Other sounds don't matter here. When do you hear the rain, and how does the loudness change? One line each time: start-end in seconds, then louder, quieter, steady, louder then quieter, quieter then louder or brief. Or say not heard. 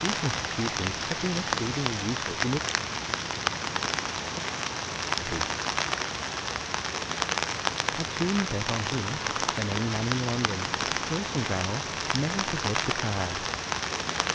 0.0-14.3 steady.